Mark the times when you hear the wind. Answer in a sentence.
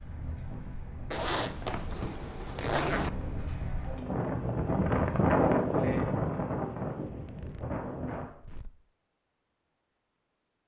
The wind can be heard from 0.0 to 8.2 s.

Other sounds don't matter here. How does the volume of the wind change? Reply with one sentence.
The loudness of the wind goes up, then down.